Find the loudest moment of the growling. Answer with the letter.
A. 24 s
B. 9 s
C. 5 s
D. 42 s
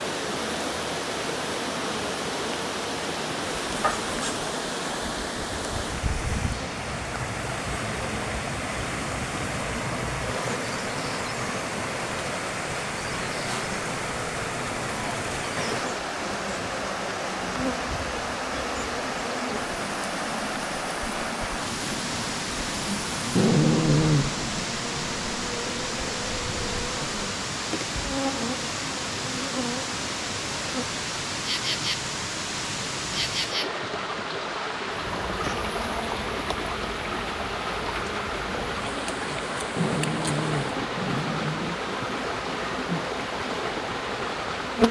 A.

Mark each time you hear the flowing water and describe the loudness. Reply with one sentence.
You can hear the flowing water from 0.0 to 44.8 s, at a steady volume.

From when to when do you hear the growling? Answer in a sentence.
You can hear the growling from 3.8 to 4.5 s, from 23.4 to 24.6 s and from 39.8 to 41.8 s.